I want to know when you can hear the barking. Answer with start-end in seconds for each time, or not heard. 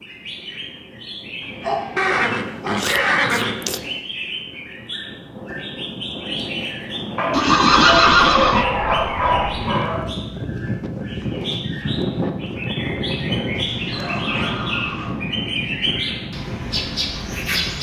1.4-2.9, 7.2-10.1, 13.6-15.2.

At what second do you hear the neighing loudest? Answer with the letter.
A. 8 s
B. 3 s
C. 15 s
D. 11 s
A.